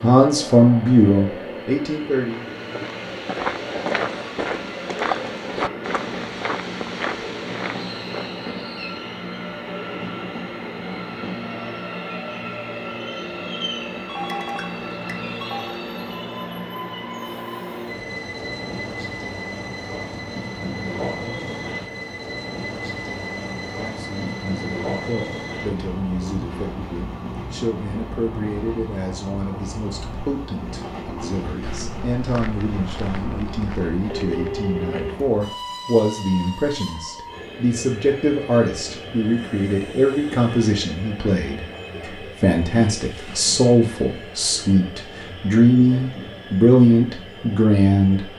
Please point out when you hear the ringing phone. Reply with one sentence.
You can hear the ringing phone from 14.1 to 15.8 s and from 34.0 to 35.4 s.